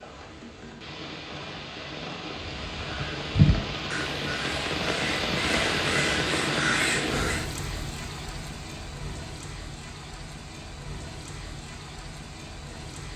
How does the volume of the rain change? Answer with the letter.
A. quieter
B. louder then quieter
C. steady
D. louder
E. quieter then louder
B.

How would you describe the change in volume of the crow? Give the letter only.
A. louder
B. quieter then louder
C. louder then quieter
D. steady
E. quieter
B.